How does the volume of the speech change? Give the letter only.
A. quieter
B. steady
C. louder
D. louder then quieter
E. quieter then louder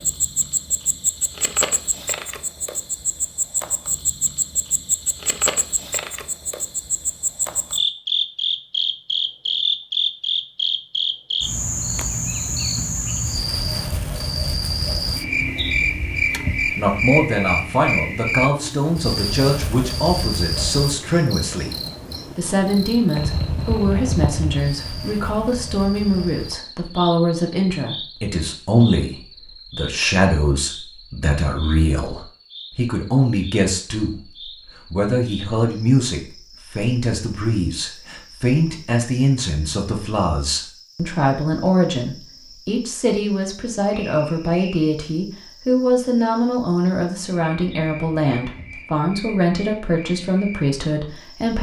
B.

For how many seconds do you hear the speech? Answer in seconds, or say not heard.
34 s.